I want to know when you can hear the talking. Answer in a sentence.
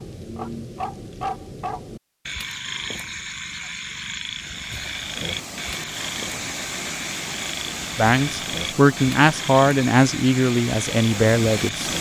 The talking can be heard from 8.0 to 11.9 s.